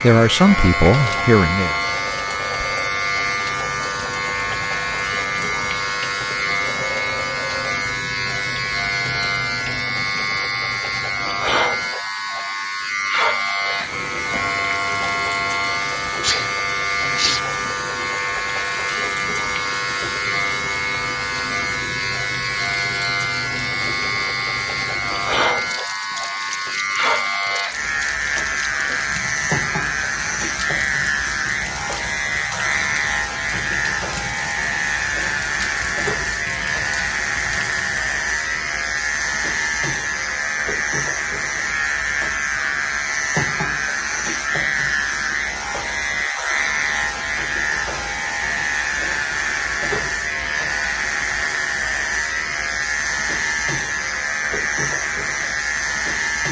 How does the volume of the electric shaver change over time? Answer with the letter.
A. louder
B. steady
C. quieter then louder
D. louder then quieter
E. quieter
B.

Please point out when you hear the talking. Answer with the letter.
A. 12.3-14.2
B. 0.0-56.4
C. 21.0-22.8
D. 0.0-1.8
D.